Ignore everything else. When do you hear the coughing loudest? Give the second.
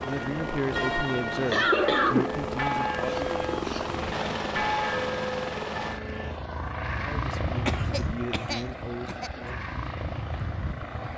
2 s.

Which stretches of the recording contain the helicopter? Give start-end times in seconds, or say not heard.
0.0-11.1.